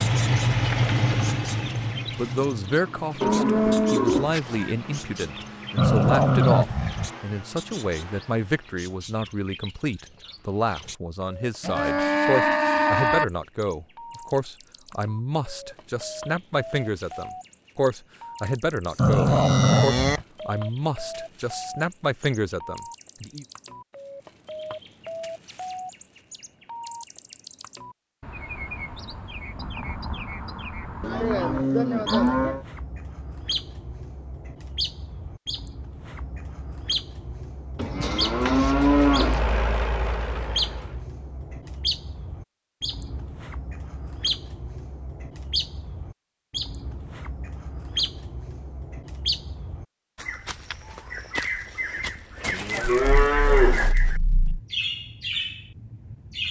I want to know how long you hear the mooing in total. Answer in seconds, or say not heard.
9 s.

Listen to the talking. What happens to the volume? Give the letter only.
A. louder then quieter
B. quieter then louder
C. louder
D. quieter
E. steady
E.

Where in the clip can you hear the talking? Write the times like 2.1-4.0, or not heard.
2.1-23.4.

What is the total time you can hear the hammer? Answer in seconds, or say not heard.
not heard.